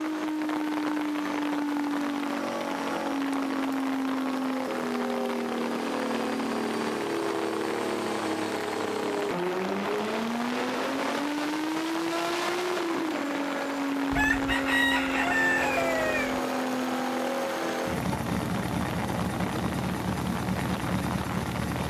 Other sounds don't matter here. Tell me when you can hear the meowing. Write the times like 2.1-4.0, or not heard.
not heard.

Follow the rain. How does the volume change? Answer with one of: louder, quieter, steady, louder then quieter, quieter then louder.
steady.